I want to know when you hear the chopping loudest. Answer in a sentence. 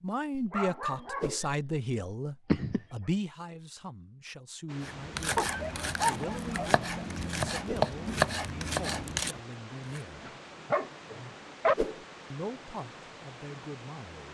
The volume of the chopping peaks at 8 seconds.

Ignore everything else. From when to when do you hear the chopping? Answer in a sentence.
You can hear the chopping from 4.8 to 10.0 s.